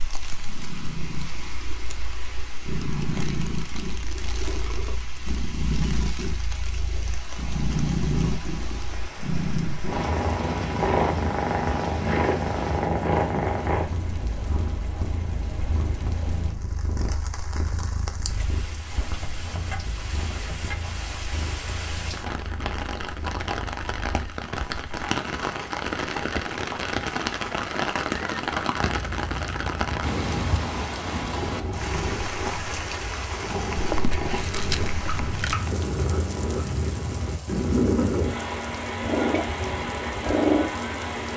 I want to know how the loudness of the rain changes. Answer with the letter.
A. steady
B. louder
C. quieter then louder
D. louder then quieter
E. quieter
D.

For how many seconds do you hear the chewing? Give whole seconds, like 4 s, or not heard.
2 s.